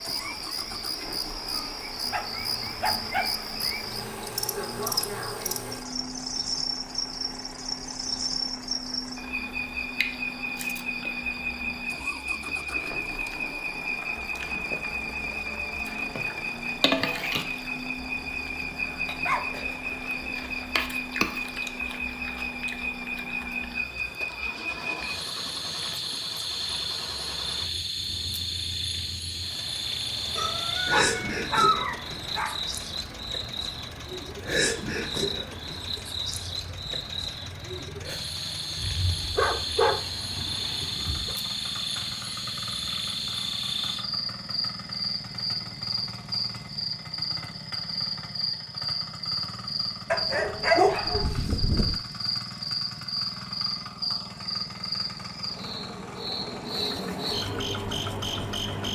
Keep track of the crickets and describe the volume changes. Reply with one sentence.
The volume of the crickets stays about the same.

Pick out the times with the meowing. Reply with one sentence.
The meowing can be heard from 30.4 to 31.4 s.